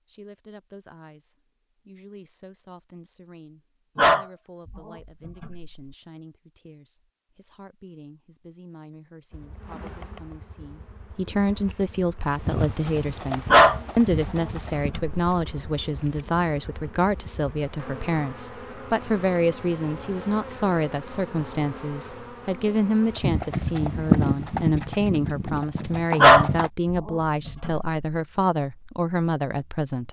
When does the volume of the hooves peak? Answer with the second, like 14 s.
24 s.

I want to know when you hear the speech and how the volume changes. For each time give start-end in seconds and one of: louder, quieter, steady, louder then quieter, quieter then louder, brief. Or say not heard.
0.1-30.0 louder.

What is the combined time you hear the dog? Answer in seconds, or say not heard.
5 s.